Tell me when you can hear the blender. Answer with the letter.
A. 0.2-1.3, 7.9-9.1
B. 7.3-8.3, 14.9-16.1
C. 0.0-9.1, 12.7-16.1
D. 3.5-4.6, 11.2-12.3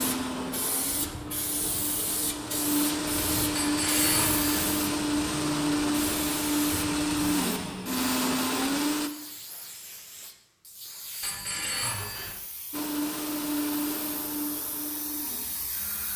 C.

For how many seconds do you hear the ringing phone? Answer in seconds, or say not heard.
2 s.